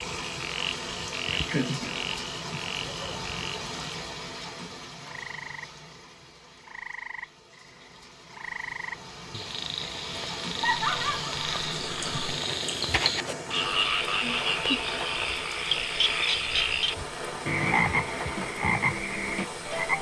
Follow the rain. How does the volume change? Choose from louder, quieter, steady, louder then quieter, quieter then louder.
quieter then louder.